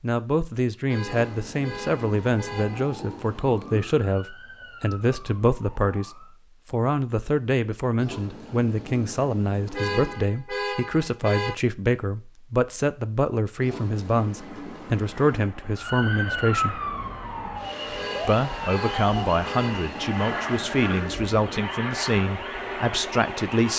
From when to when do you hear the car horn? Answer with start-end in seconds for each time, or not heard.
0.8-2.9, 9.7-11.6, 17.9-19.9.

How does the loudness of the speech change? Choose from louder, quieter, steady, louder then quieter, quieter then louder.
steady.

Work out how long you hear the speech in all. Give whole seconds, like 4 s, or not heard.
22 s.